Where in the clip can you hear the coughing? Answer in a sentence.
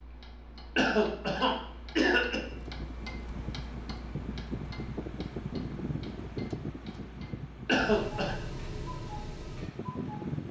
The coughing can be heard from 0.8 to 2.4 s and from 7.7 to 8.3 s.